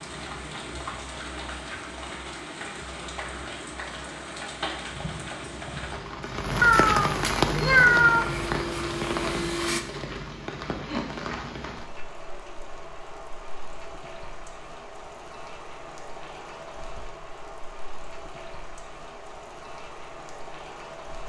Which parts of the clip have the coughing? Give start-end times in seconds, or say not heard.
not heard.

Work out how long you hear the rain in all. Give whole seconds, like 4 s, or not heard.
21 s.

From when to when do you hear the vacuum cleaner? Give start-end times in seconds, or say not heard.
7.6-9.8.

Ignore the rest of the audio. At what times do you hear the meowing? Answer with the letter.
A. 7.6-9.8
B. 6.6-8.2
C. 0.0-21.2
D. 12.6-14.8
B.